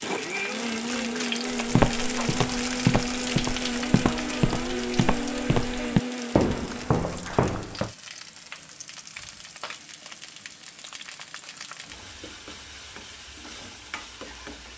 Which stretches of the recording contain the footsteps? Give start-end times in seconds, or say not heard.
1.6-7.9.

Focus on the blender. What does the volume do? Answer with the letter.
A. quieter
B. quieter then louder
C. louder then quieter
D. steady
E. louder
D.